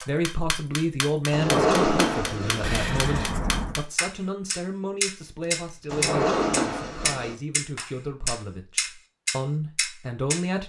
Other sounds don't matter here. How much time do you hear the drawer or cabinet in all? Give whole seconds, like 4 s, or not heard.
3 s.